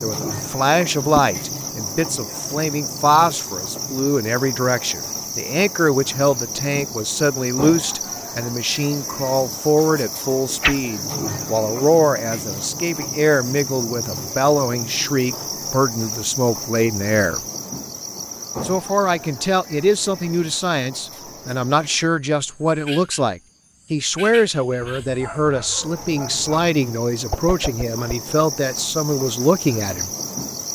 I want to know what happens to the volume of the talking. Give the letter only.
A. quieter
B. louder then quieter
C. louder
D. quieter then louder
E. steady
E.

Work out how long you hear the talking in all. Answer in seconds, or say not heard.
29 s.